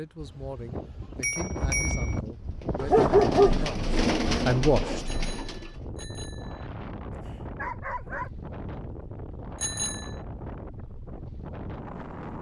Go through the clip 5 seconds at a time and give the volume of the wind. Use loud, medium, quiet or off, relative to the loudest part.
loud, medium, medium.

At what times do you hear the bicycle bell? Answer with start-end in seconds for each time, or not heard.
0.2-2.2, 5.0-6.7, 9.6-10.2.